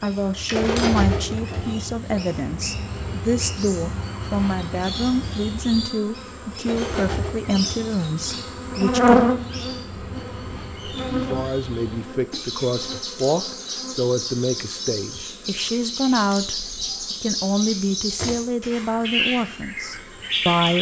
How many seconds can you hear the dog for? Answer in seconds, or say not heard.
not heard.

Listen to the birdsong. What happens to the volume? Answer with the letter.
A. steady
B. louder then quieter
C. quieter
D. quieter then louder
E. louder
D.